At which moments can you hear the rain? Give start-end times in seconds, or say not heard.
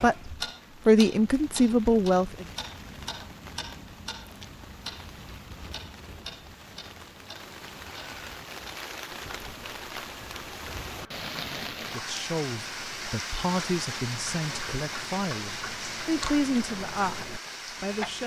0.0-18.2.